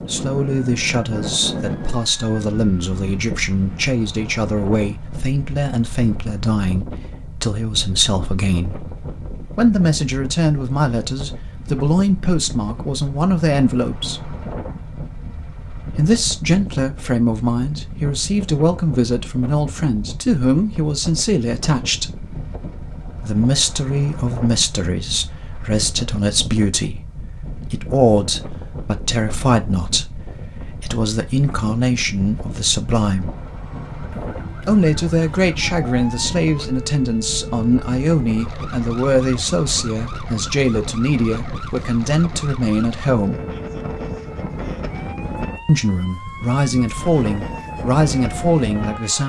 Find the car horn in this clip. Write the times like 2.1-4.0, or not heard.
not heard.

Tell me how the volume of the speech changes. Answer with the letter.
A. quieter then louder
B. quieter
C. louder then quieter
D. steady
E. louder
D.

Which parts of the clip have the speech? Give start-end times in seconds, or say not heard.
0.0-8.8, 9.5-14.3, 15.9-22.1, 23.1-33.3, 34.6-43.4, 45.6-49.2.